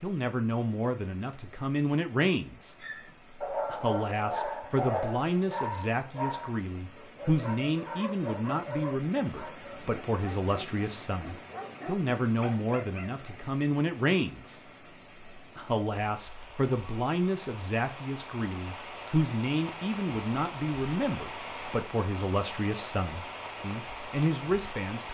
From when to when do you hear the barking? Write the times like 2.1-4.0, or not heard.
2.8-13.3.